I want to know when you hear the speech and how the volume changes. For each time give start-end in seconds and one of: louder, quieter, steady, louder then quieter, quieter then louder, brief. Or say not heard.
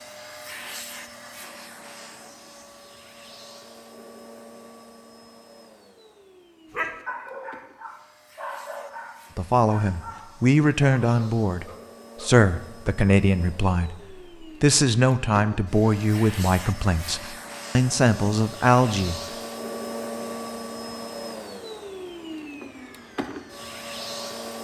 9.3-19.2 steady.